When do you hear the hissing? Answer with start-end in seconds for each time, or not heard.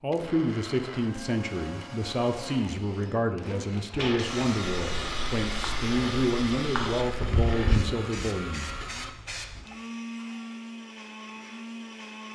3.9-9.6.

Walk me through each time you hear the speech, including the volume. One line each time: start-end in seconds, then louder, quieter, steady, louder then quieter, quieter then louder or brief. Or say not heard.
0.0-8.7 steady.